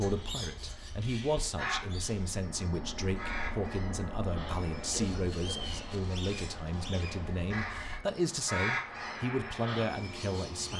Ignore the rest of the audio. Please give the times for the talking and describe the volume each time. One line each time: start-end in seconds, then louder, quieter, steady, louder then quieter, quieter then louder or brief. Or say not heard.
0.0-10.7 steady.